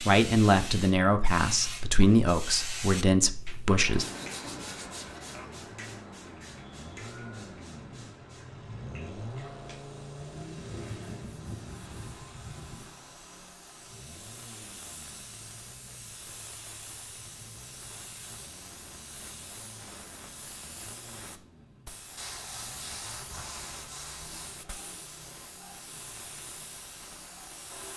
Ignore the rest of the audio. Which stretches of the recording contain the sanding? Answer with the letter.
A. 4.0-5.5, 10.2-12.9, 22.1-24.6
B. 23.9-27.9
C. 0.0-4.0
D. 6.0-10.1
A.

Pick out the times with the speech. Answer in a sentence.
The speech can be heard from 0.0 to 4.0 s.